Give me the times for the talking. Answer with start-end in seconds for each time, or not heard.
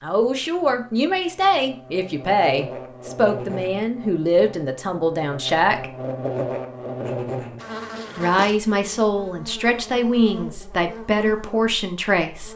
0.0-5.8, 8.2-12.5.